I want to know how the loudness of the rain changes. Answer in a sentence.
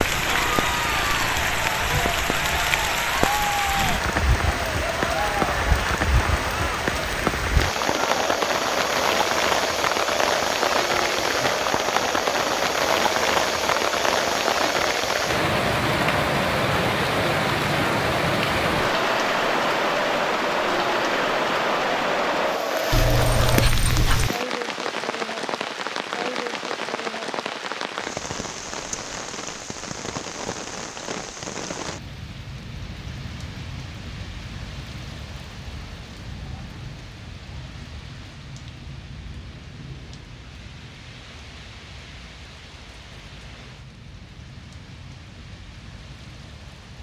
The volume of the rain goes down.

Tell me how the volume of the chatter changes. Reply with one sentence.
The loudness of the chatter stays about the same.